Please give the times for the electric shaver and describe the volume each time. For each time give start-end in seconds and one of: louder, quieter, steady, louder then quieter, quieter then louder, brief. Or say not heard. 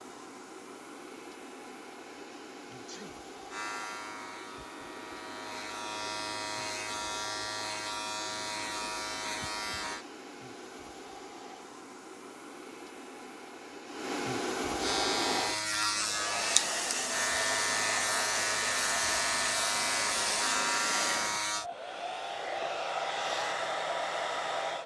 3.5-10.1 louder
14.8-21.6 steady.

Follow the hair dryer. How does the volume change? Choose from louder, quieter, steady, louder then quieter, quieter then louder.
louder.